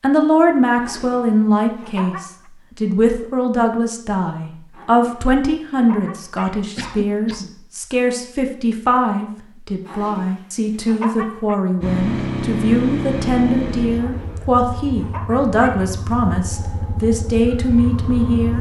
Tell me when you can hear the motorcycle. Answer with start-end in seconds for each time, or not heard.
11.8-18.5.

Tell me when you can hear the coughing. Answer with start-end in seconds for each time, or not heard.
6.8-7.6.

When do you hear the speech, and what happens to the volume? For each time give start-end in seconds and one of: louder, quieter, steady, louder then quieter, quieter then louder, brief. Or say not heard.
0.0-18.5 steady.